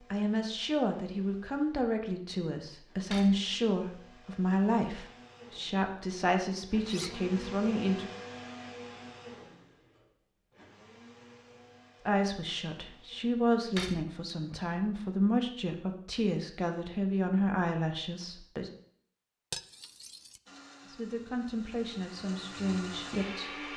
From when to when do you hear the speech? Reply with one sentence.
You can hear the speech from 0.1 to 8.1 s, from 12.1 to 18.7 s and from 20.9 to 23.5 s.